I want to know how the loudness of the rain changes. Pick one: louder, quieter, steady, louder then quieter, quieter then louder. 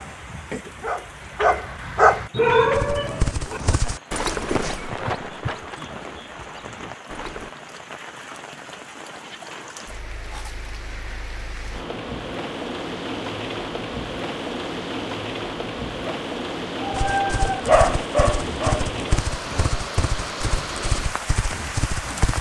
louder.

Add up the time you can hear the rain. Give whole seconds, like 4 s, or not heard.
22 s.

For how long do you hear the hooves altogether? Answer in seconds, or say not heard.
10 s.